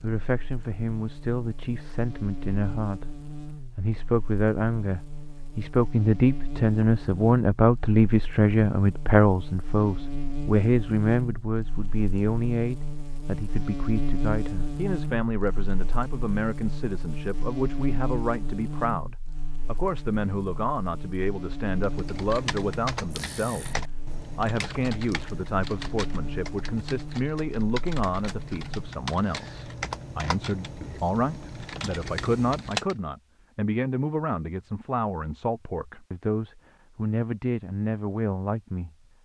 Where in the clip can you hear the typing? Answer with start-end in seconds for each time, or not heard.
21.6-33.0.